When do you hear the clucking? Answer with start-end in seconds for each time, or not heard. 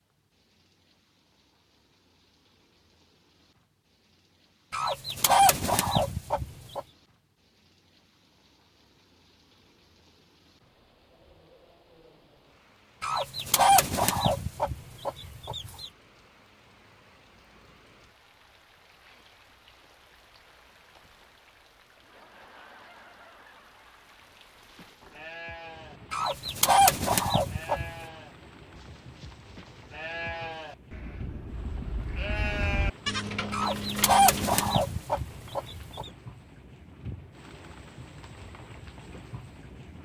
4.7-6.8, 13.0-15.9, 26.1-27.9, 33.5-36.0.